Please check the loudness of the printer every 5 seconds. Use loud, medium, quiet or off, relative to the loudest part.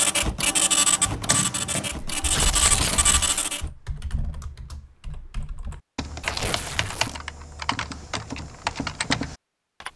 loud, off.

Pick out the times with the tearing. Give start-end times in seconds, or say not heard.
2.3-3.5, 6.2-7.2.